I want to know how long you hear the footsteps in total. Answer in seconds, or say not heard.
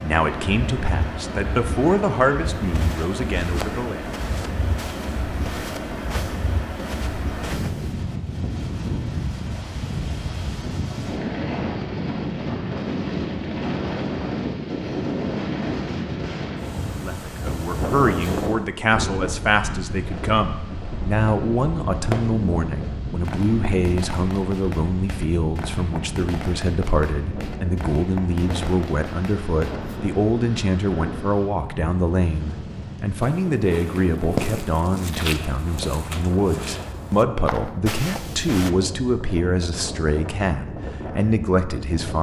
11 s.